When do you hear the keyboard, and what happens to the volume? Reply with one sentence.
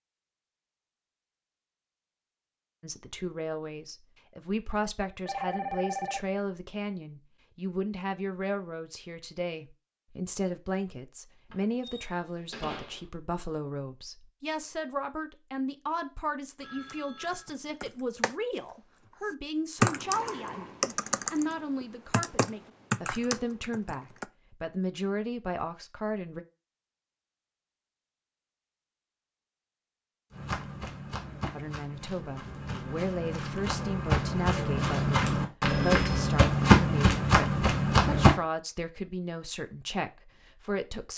You can hear the keyboard from 16.9 to 24.2 s, getting louder then quieter.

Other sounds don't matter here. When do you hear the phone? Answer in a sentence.
You can hear the phone from 5.2 to 6.3 s, from 16.6 to 17.5 s and from 35.6 to 36.4 s.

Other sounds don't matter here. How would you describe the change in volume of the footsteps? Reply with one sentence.
The loudness of the footsteps goes up.